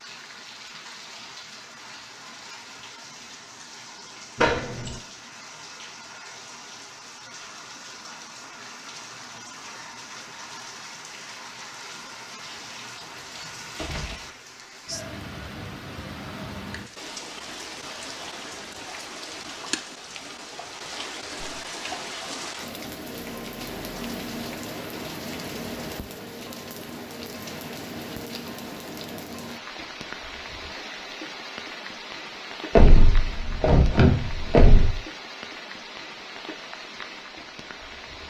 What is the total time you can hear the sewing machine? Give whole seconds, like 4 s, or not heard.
not heard.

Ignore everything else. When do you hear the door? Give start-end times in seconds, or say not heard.
4.3-5.0, 13.1-14.2, 32.8-35.0.